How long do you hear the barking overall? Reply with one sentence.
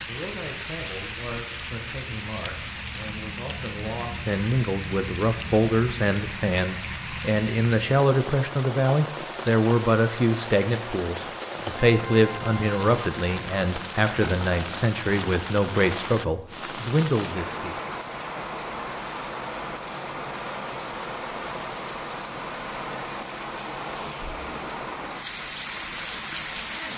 The barking can't be heard in this clip.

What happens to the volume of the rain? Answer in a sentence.
The loudness of the rain stays about the same.